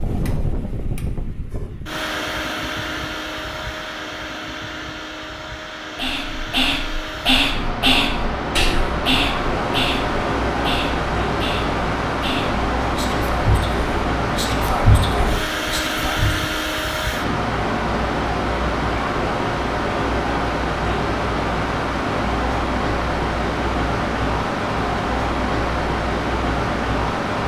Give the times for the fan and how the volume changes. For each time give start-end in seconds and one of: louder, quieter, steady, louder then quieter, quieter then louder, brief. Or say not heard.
0.0-27.4 louder.